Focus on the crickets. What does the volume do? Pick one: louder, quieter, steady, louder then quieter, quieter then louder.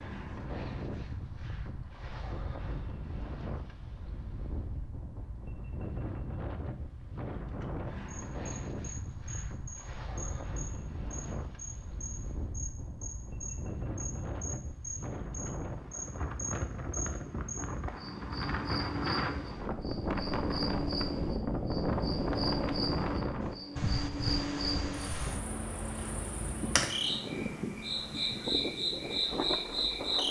louder.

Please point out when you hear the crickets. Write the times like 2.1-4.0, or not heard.
8.1-30.2.